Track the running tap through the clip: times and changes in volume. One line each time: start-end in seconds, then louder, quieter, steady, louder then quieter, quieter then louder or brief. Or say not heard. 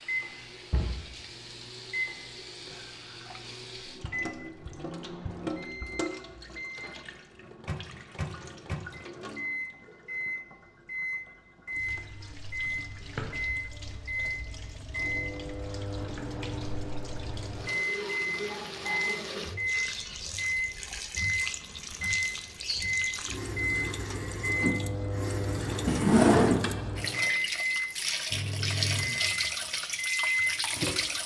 0.0-31.2 quieter then louder.